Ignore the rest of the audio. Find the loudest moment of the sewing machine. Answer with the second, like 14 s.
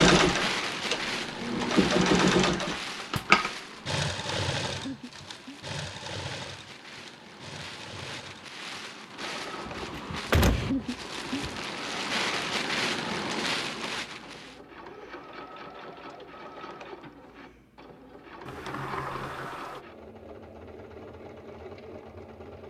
2 s.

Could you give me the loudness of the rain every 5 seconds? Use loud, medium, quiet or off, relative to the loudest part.
loud, medium, loud, off, off.